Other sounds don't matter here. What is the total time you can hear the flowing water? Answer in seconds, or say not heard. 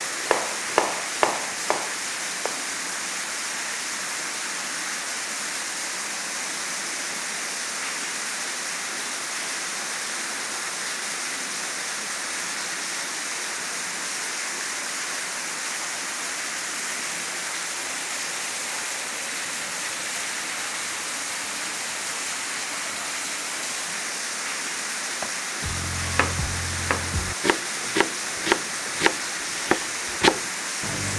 31 s.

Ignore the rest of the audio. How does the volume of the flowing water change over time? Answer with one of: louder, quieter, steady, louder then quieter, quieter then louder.
steady.